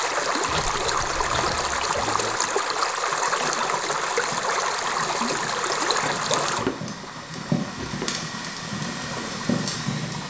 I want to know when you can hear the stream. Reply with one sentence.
The stream can be heard from 0.0 to 10.2 s.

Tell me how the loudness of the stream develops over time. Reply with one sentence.
The volume of the stream goes down.